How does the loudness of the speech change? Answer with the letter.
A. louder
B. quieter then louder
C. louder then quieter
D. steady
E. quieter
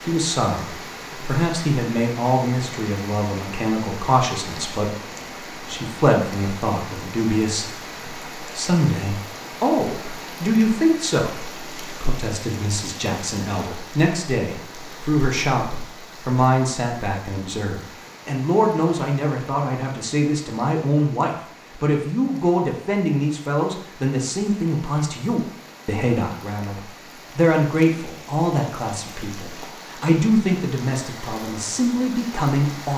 D.